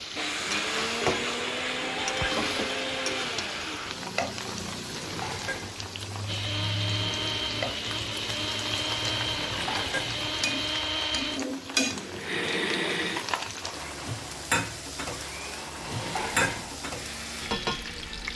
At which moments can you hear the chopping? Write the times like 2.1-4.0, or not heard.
not heard.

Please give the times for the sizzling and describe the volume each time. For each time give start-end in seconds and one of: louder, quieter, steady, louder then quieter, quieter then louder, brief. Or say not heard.
0.0-18.3 steady.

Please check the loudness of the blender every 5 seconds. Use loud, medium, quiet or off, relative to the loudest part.
loud, loud, loud, medium.